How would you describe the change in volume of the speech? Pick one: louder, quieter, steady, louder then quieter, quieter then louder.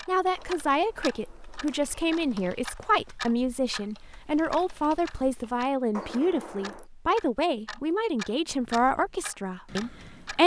steady.